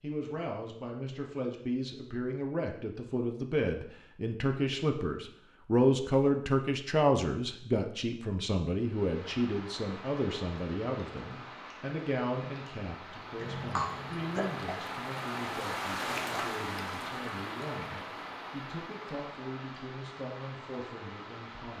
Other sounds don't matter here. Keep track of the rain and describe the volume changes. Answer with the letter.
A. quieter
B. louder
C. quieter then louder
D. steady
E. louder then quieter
E.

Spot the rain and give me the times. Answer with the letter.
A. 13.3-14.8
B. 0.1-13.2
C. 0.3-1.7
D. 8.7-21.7
D.